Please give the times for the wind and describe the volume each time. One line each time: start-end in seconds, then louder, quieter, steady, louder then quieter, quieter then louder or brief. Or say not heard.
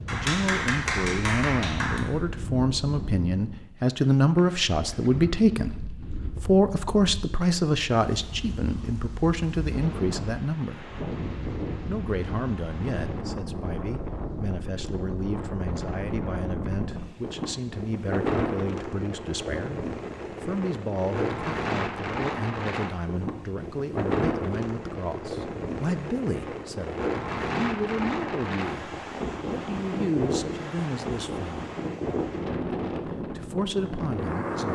0.0-34.7 louder.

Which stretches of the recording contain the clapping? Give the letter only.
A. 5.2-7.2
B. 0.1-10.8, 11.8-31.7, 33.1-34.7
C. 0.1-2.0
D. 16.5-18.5
C.